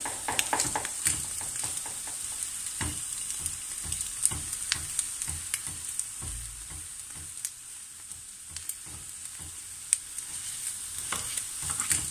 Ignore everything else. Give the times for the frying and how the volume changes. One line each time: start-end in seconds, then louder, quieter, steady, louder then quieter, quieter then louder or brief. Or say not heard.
0.0-12.0 quieter then louder.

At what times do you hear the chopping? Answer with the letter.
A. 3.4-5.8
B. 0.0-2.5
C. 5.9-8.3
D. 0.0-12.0
B.